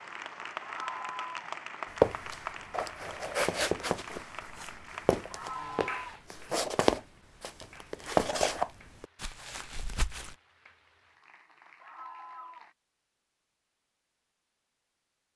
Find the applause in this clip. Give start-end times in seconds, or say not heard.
0.0-12.8.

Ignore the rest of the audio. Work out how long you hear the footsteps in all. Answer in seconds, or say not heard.
8 s.